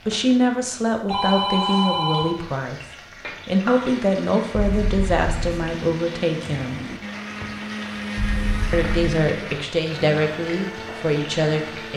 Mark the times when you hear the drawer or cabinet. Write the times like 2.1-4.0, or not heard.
6.3-7.0.